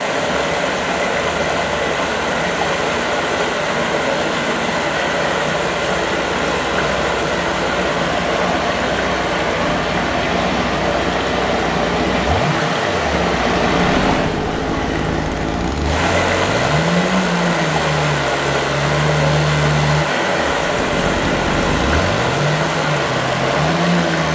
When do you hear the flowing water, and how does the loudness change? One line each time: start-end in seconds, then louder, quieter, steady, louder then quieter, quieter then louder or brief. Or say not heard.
0.0-24.3 steady.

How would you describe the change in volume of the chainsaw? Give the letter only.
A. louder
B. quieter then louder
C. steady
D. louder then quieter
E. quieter
A.